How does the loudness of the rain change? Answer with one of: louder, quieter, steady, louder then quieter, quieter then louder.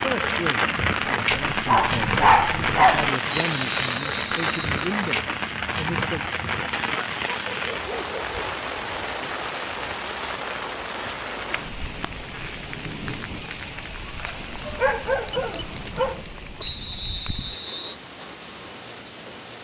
quieter.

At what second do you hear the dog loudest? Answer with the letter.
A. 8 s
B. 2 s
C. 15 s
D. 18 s
B.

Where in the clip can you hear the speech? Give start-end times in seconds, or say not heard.
0.0-6.2.